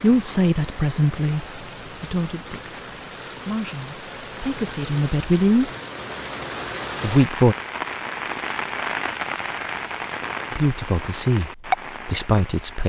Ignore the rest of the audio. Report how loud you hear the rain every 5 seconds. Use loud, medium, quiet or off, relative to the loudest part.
medium, loud, loud.